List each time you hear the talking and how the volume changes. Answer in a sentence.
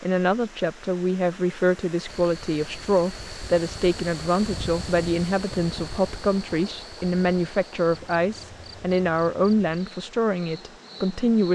You can hear the talking from 0.0 to 11.5 s, at a steady volume.